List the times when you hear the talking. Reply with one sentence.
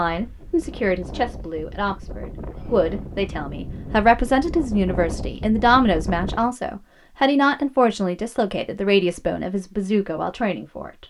You can hear the talking from 0.0 to 11.0 s.